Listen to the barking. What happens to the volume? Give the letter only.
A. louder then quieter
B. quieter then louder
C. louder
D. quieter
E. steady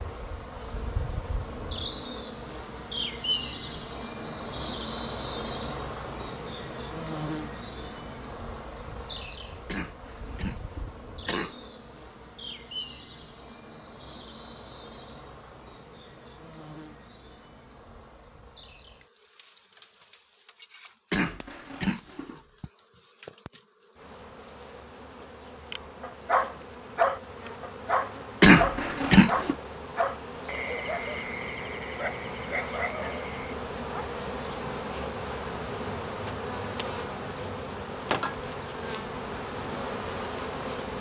D.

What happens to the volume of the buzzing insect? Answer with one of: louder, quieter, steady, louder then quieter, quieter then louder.
quieter then louder.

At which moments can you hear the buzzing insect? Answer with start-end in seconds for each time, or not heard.
0.0-40.9.